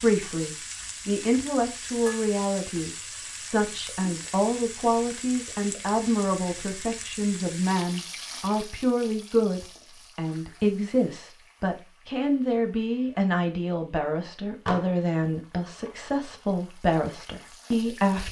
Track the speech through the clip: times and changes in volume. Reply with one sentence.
You can hear the speech from 0.0 to 18.2 s, at a steady volume.